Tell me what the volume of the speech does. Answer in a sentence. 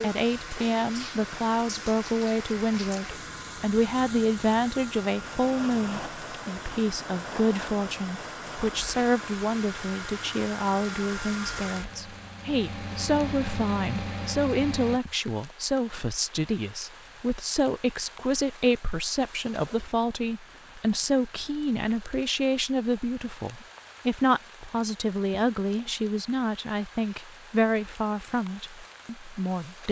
The loudness of the speech stays about the same.